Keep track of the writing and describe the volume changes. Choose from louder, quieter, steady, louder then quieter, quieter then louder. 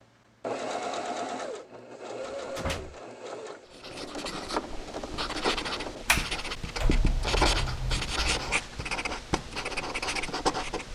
louder.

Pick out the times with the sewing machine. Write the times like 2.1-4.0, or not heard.
0.4-6.0.